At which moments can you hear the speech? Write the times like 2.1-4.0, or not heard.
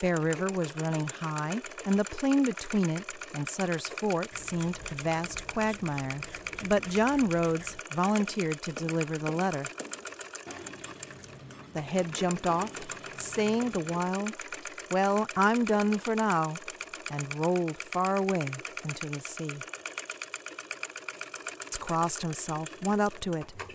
0.0-9.7, 11.8-19.6, 21.7-23.7.